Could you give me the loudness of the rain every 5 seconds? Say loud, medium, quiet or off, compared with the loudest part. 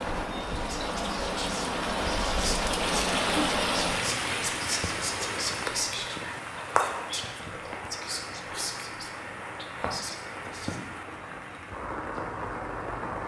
loud, medium, medium.